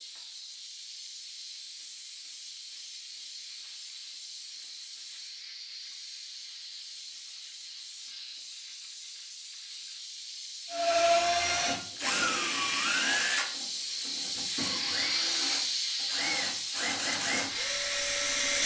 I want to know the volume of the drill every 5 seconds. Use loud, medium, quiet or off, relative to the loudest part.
off, off, loud, loud.